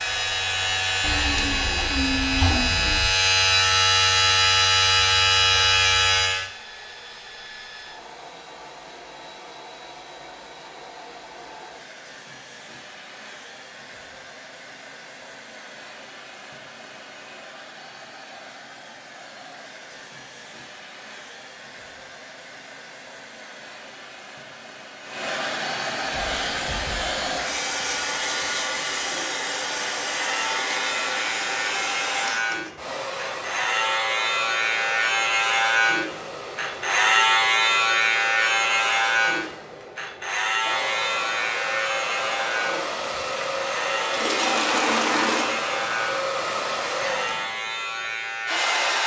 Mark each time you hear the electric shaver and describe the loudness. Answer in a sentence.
You can hear the electric shaver from 0.0 to 6.5 s, getting louder; and from 26.1 to 49.0 s, getting louder then quieter.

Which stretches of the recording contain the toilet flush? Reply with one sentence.
The toilet flush can be heard from 1.0 to 3.0 s and from 44.1 to 45.5 s.